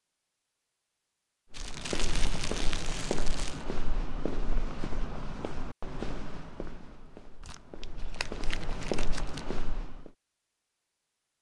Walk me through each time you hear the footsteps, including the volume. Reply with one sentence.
You can hear the footsteps from 1.5 to 10.1 s, getting quieter then louder.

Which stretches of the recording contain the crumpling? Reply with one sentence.
You can hear the crumpling from 1.5 to 3.6 s and from 7.4 to 9.4 s.